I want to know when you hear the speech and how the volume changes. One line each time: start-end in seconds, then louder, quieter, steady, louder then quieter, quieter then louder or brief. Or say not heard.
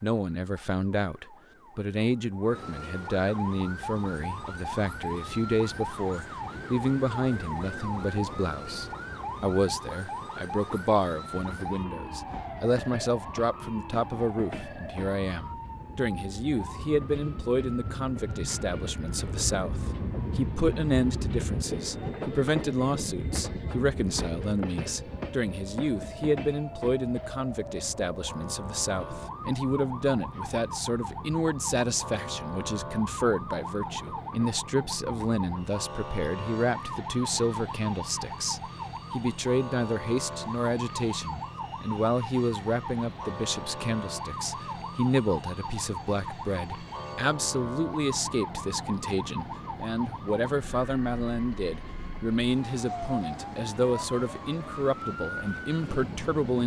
0.0-56.6 steady.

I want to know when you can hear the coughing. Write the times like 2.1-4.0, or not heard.
not heard.